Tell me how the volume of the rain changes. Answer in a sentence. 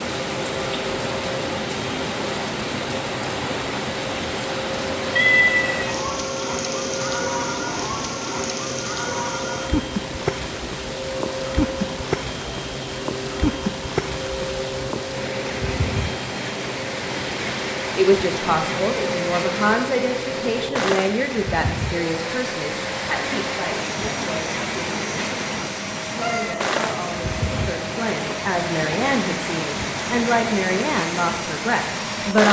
The volume of the rain stays about the same.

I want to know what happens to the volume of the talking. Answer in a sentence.
The volume of the talking goes down, then up.